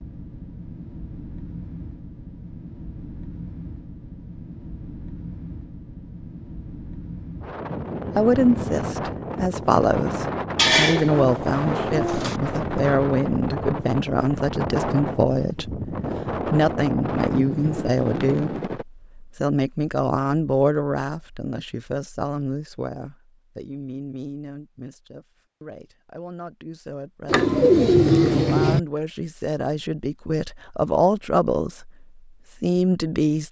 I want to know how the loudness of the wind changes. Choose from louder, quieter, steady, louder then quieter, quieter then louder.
louder.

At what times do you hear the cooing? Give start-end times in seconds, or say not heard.
10.6-12.4, 27.2-28.8.